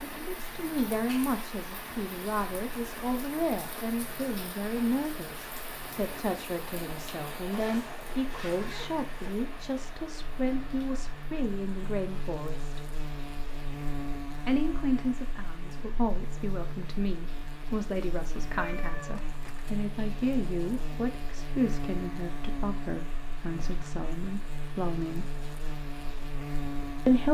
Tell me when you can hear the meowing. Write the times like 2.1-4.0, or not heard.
18.6-19.8.